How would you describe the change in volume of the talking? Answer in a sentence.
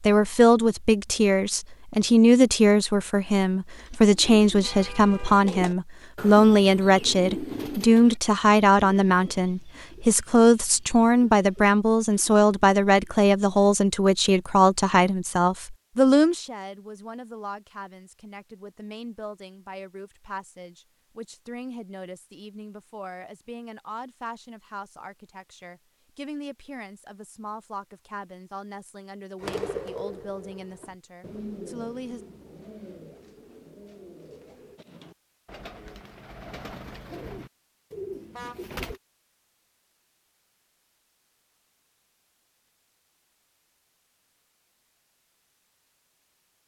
The volume of the talking goes down.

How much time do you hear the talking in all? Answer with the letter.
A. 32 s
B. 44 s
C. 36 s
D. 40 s
A.